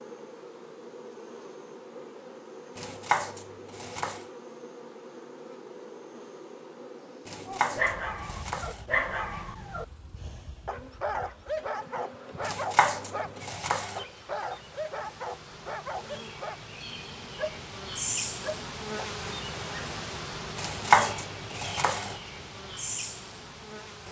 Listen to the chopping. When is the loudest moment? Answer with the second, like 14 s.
21 s.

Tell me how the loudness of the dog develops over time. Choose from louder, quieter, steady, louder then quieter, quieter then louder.
quieter.